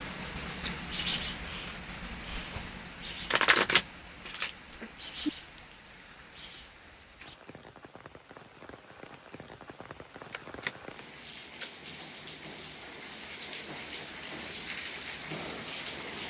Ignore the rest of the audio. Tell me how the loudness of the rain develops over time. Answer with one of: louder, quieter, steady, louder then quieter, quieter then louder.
quieter then louder.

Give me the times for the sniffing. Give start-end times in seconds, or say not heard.
1.4-2.6.